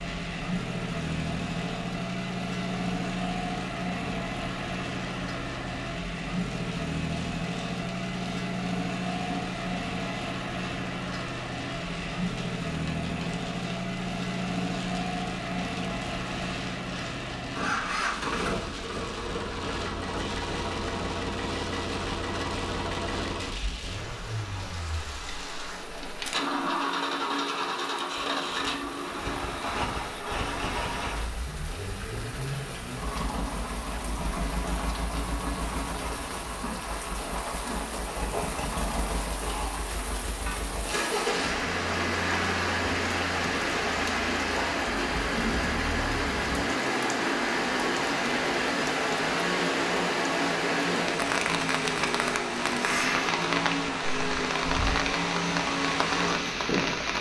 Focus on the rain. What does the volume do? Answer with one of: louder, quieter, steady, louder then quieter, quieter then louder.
louder.